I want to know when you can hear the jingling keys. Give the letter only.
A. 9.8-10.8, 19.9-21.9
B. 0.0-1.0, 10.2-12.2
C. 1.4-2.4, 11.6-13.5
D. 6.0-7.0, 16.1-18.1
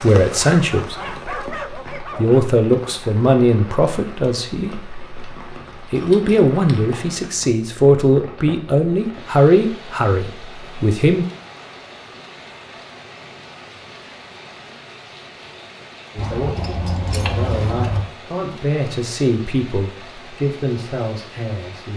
D.